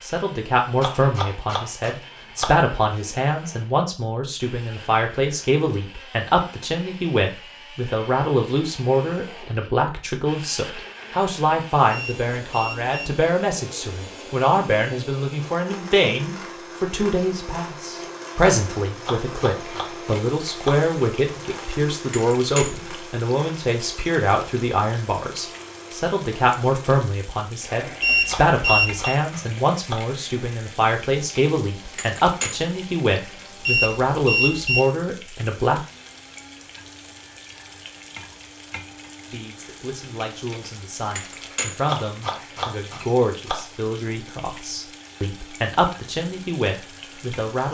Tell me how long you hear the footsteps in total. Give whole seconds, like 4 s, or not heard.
not heard.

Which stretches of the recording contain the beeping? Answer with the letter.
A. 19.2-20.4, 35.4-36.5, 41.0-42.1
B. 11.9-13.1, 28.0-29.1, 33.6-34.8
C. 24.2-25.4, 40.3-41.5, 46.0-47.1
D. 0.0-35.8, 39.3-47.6
B.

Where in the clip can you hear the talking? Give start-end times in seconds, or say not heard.
0.0-35.8, 39.3-47.6.